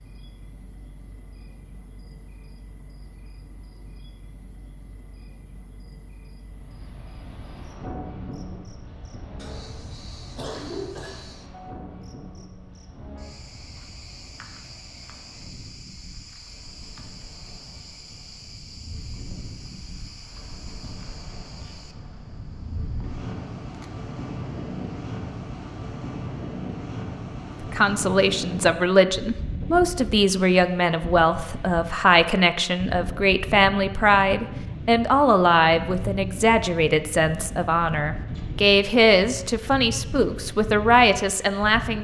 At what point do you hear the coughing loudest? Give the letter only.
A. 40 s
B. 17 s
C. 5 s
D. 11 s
D.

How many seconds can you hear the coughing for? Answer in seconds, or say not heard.
2 s.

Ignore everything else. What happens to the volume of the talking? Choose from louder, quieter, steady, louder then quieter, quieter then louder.
steady.